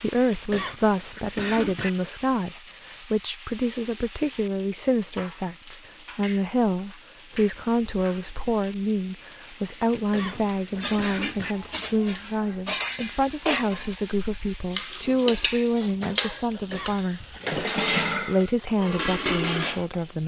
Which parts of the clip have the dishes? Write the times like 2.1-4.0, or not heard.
10.3-19.9.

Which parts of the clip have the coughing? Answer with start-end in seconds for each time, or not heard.
0.3-1.9, 9.9-11.6, 16.5-17.9.